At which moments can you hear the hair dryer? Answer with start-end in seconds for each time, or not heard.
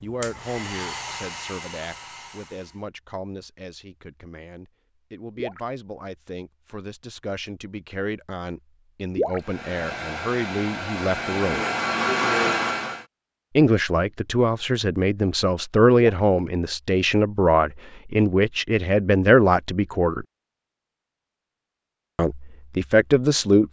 0.0-2.9, 9.4-13.1.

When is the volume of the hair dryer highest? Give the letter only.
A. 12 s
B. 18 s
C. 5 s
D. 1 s
A.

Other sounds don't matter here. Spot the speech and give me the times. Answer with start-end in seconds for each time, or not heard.
0.0-11.7, 13.6-20.2, 22.1-23.6.